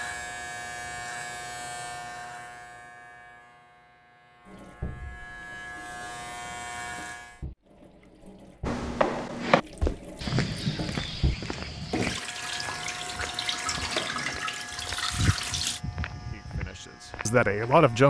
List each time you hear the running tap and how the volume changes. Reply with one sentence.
You can hear the running tap from 4.5 to 15.8 s, getting louder.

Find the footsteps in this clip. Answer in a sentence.
The footsteps can be heard from 8.7 to 18.0 s.